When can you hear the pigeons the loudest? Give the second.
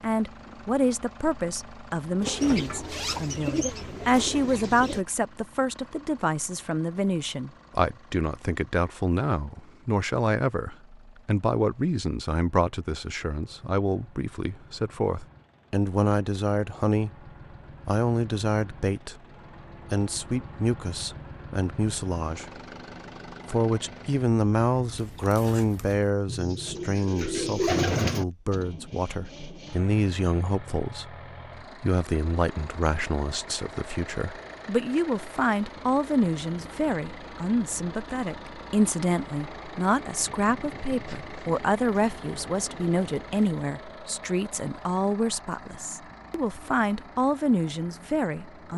28 s.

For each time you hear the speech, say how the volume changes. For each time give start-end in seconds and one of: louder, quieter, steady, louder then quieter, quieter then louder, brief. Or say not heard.
0.0-19.2 steady
19.9-22.6 brief
23.4-48.7 steady.